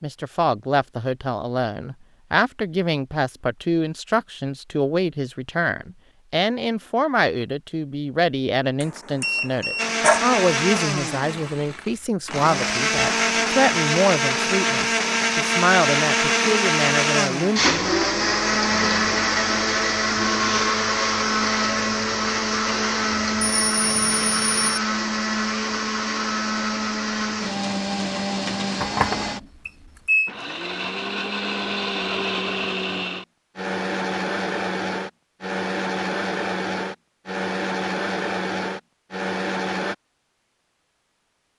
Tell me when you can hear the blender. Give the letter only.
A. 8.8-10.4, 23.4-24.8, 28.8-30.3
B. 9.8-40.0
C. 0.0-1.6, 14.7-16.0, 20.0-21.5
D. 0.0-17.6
B.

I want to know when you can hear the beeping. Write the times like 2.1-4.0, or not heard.
8.8-10.4, 23.4-24.8, 28.8-30.3.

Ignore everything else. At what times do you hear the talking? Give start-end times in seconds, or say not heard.
0.0-17.6.